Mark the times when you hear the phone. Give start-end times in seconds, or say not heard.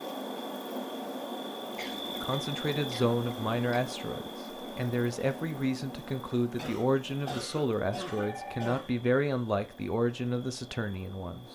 8.1-8.8.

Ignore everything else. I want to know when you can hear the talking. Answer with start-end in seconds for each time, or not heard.
2.0-11.4.